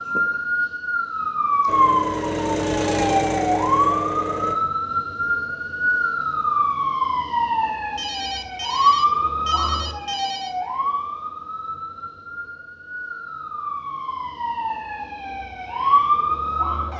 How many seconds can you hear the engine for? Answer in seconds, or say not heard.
3 s.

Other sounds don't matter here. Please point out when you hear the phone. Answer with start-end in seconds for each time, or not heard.
8.0-10.6.